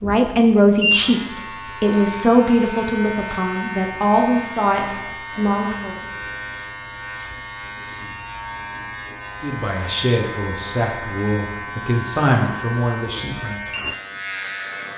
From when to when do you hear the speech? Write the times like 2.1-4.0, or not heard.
0.0-6.0, 9.4-13.6.